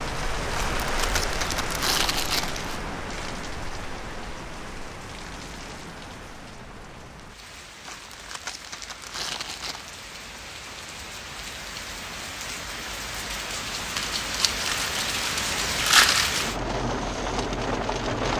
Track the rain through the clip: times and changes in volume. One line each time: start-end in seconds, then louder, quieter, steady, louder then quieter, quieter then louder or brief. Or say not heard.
0.0-18.3 quieter then louder.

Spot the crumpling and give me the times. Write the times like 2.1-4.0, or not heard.
0.5-2.8, 7.8-9.9, 13.9-16.4.